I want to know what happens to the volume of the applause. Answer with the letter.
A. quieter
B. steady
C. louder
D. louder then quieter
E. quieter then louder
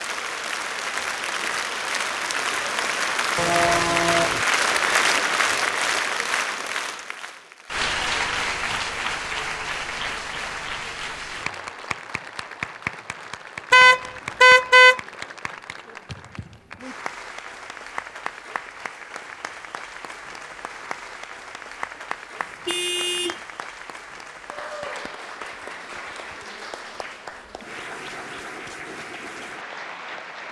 A.